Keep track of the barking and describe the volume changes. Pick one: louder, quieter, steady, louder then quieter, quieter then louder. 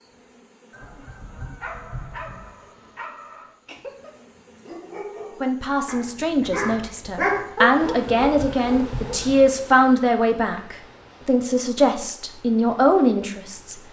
louder.